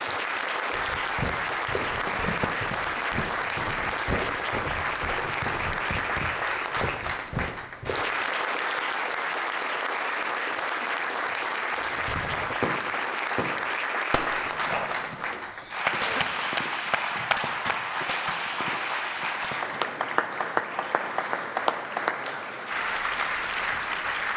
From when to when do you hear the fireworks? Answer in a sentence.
The fireworks can be heard from 11.8 to 19.8 s.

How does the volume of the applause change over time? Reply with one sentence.
The volume of the applause stays about the same.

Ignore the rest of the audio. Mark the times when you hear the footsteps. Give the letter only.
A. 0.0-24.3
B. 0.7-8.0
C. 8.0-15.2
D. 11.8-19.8
B.